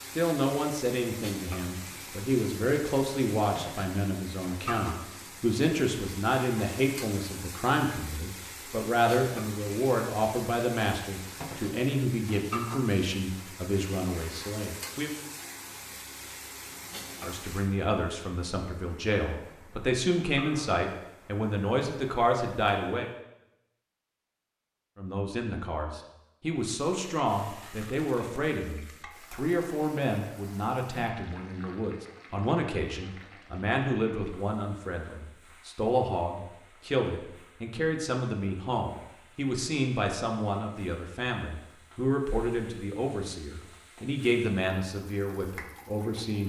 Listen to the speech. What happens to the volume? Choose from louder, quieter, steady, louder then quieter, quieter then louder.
steady.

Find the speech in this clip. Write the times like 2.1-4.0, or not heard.
0.1-15.1, 17.2-23.1, 24.9-46.4.